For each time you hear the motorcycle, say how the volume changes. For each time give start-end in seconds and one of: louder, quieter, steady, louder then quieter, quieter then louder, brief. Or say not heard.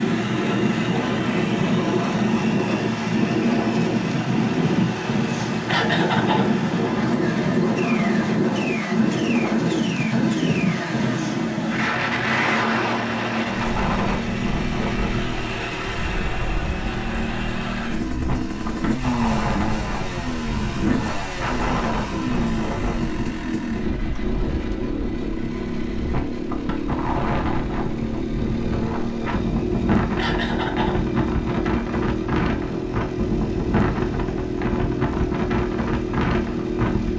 0.0-37.1 steady.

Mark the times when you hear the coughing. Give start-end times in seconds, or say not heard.
5.7-6.5, 30.1-31.0.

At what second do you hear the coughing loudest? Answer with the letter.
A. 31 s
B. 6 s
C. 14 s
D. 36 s
B.